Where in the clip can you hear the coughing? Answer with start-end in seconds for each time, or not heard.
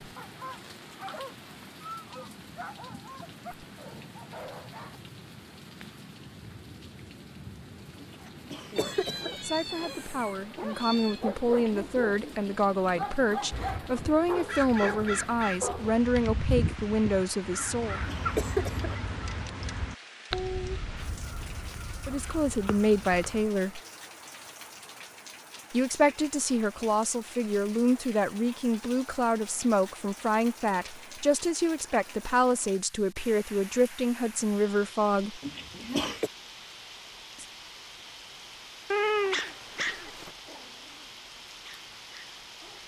8.0-9.4, 17.6-18.9, 35.4-36.3.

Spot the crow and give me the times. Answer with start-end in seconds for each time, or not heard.
13.5-23.5.